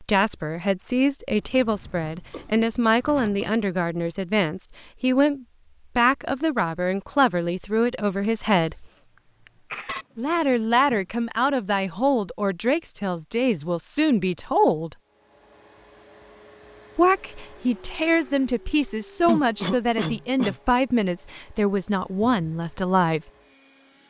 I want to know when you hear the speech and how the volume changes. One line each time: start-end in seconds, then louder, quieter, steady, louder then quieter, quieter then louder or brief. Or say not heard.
0.0-8.8 steady
10.2-14.9 steady
16.9-23.2 steady.